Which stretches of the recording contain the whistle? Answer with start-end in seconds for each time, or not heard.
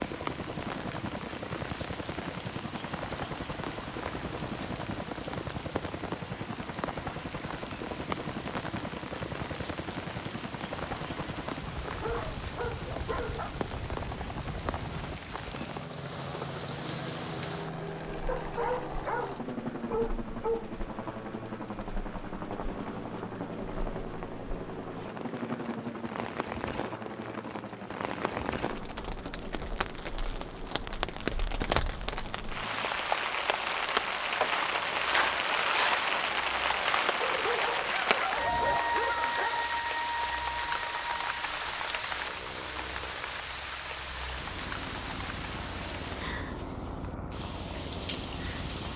not heard.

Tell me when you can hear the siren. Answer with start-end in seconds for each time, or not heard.
not heard.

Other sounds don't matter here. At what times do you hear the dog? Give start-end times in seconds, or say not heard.
11.8-13.6, 18.2-20.8, 37.2-39.9.